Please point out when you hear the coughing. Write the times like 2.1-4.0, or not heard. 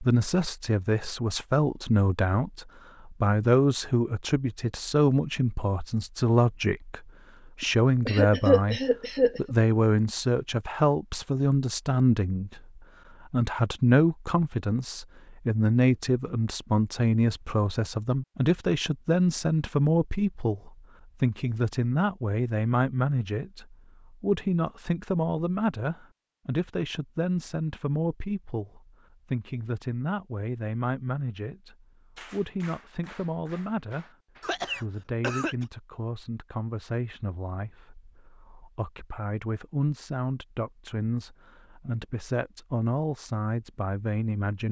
7.6-9.6, 34.4-35.6.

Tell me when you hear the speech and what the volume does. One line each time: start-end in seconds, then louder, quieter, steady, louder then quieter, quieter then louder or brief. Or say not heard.
0.0-44.6 quieter.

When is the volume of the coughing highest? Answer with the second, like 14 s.
8 s.